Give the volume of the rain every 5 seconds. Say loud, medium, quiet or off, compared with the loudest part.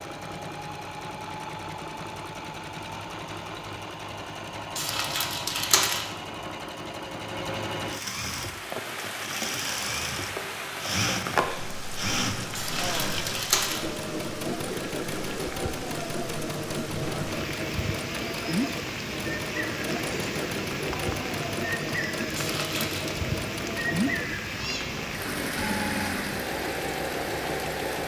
off, loud, loud, loud, loud, loud.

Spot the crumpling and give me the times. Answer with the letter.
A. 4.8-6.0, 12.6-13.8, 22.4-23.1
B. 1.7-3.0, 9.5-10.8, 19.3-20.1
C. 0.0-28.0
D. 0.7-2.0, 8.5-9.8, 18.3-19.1
A.